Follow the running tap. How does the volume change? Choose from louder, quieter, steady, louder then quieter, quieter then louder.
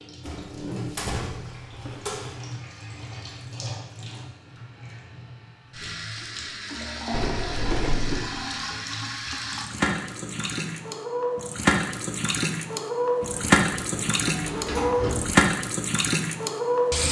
louder.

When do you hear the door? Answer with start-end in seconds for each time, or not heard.
0.2-2.4, 7.1-8.3, 13.2-15.4.